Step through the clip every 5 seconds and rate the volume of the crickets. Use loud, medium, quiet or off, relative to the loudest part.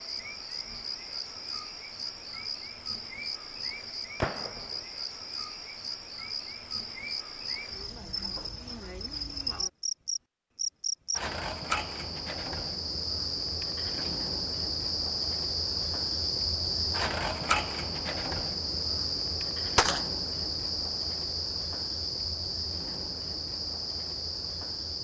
medium, medium, loud, loud, loud.